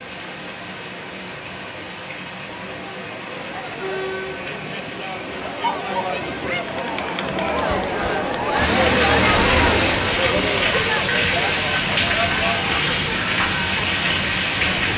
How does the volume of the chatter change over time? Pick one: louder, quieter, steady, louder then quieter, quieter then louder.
louder then quieter.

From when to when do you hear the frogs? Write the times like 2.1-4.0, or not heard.
not heard.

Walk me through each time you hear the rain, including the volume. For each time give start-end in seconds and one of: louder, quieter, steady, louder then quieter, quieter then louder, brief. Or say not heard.
0.0-14.9 louder.